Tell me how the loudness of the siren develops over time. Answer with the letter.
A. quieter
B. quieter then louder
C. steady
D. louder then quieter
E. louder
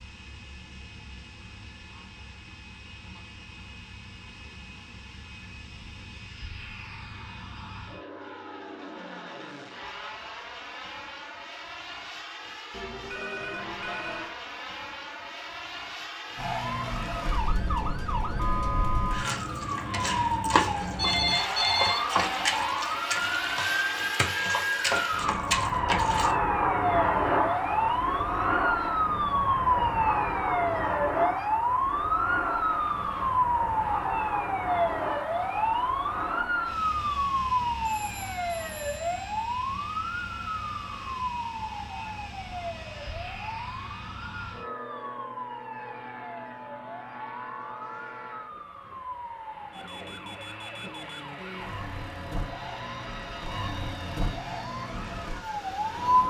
A.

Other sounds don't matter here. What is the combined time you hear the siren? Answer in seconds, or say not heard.
40 s.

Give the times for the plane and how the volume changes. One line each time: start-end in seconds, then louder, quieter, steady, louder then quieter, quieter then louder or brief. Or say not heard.
0.0-56.2 louder then quieter.